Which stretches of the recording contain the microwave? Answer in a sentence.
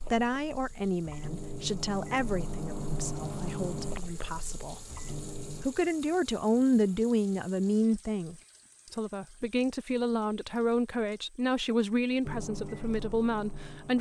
The microwave can be heard from 0.0 to 5.7 s and from 12.2 to 13.9 s.